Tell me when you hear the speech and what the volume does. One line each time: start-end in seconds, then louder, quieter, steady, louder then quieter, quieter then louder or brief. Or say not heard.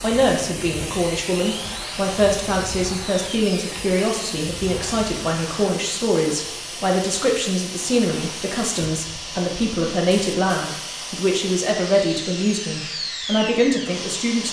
0.0-14.4 steady.